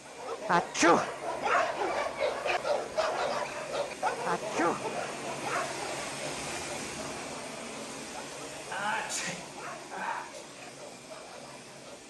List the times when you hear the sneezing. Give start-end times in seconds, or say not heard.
0.5-1.1, 4.2-4.8, 8.6-10.4.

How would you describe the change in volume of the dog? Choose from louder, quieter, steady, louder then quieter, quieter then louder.
quieter.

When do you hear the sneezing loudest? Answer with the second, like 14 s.
1 s.